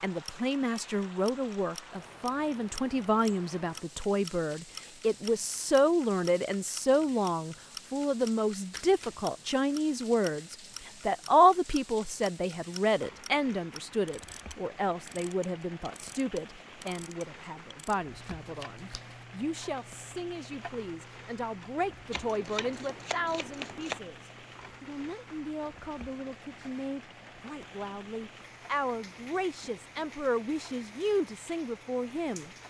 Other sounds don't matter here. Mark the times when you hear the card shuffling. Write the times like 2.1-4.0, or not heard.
8.7-9.2, 18.2-19.2, 22.1-24.0.